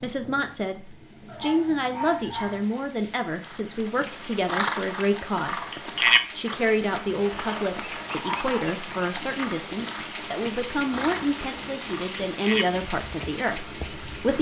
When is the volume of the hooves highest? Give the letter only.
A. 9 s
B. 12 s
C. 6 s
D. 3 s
C.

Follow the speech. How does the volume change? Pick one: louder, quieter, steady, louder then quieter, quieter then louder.
steady.